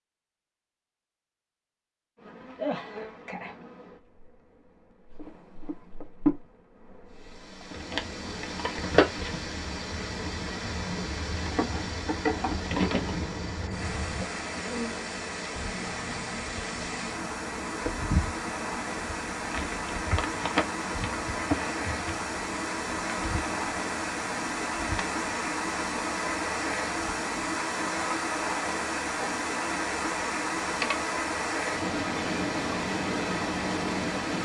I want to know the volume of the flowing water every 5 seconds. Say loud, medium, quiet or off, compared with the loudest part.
off, medium, medium, medium, loud, loud, loud.